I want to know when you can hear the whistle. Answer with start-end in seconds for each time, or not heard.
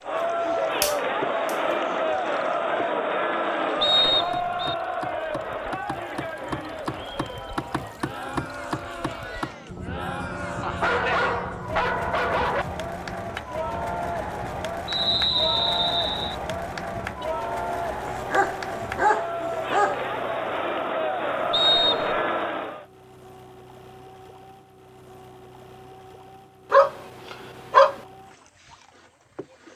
3.8-4.8, 14.8-16.4, 21.5-22.2.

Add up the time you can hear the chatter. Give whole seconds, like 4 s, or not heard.
23 s.